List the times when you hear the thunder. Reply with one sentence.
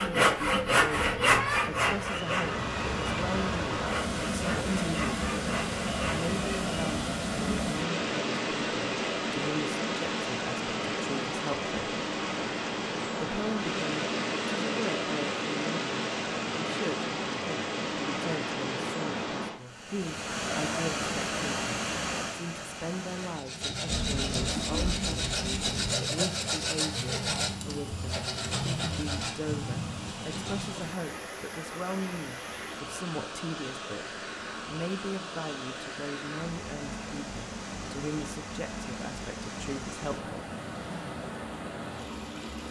The thunder can be heard from 23.9 to 25.9 s.